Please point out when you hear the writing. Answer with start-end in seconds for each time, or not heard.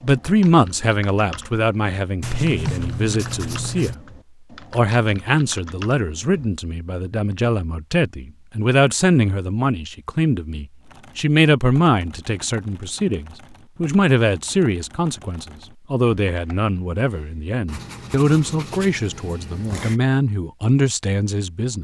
2.2-4.0, 17.6-20.0.